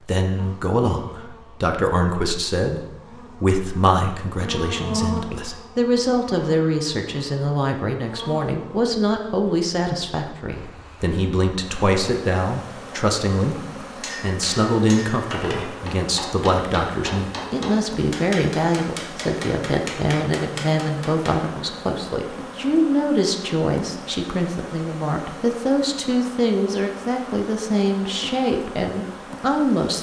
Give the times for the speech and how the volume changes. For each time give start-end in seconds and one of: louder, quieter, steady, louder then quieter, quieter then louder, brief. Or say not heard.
0.0-29.9 steady.